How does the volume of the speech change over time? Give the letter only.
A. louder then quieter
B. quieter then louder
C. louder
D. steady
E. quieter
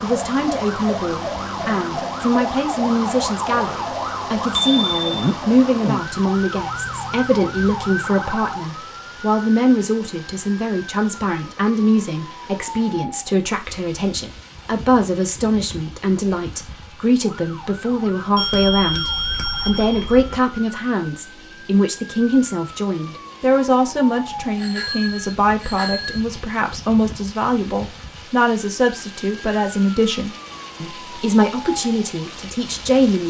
D.